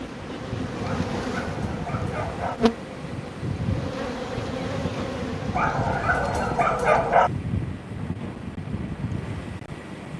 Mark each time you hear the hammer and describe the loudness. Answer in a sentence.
The hammer can't be heard in this clip.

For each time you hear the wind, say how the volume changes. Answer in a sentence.
You can hear the wind from 0.0 to 10.1 s, at a steady volume.